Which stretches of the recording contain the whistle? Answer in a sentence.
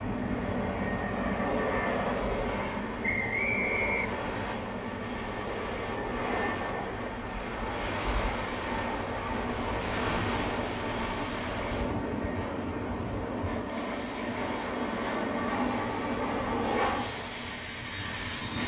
You can hear the whistle from 3.0 to 4.5 s.